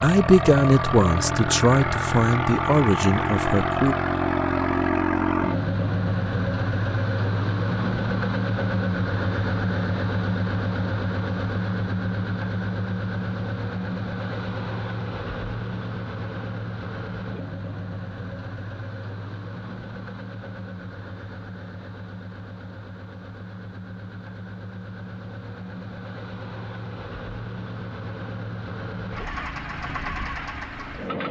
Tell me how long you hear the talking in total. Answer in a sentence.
The talking can be heard for 4 seconds in total.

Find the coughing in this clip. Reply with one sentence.
The coughing can't be heard in this clip.